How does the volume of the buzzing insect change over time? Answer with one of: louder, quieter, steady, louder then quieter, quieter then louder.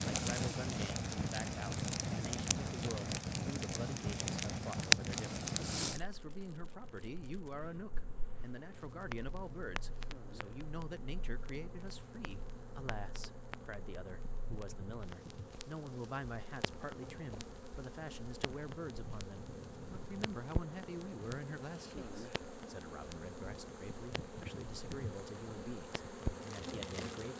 louder.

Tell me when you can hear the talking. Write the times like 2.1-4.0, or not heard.
0.1-27.3.